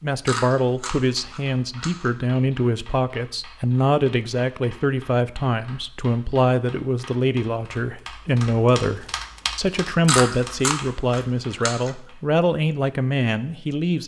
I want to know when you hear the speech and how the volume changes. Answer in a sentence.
You can hear the speech from 0.0 to 14.0 s, at a steady volume.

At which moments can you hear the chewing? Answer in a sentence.
You can hear the chewing from 0.2 to 2.1 s and from 10.1 to 11.9 s.